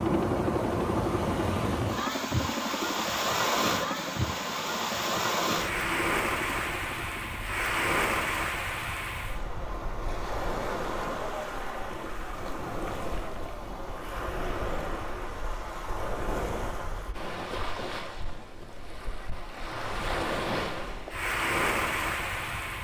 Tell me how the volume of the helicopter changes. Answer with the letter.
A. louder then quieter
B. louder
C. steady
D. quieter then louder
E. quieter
E.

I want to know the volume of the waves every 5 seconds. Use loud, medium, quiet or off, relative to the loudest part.
loud, loud, medium, medium, loud.